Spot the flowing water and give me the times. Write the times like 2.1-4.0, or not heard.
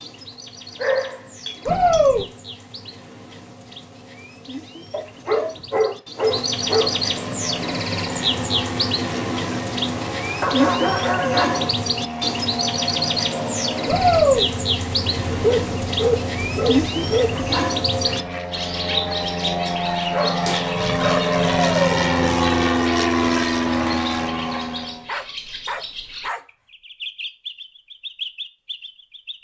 not heard.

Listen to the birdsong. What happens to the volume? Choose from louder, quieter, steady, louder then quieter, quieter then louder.
louder then quieter.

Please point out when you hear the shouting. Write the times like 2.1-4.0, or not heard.
1.6-2.2, 13.8-14.4, 21.4-21.9.